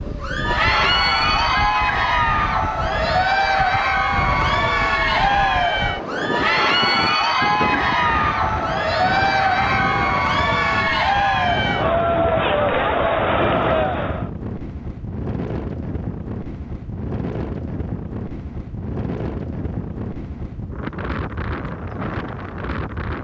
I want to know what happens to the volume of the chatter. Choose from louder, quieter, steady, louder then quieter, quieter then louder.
steady.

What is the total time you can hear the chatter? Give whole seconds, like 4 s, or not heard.
14 s.